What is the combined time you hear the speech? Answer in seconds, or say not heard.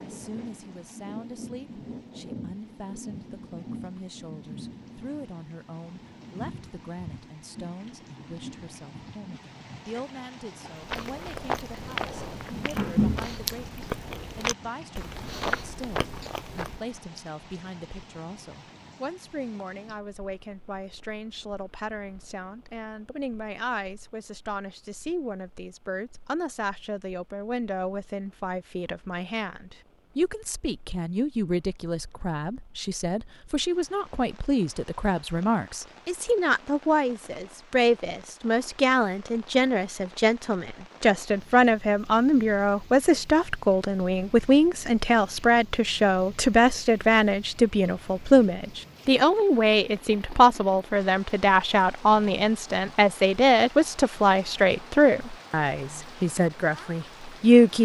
58 s.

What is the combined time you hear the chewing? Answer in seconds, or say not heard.
6 s.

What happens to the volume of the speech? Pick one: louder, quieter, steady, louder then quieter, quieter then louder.
louder.